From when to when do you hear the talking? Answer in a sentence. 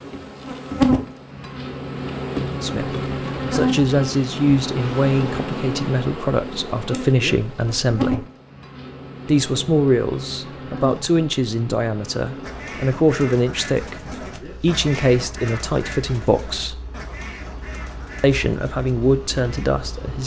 You can hear the talking from 2.6 to 8.2 s, from 9.2 to 16.8 s and from 18.2 to 20.2 s.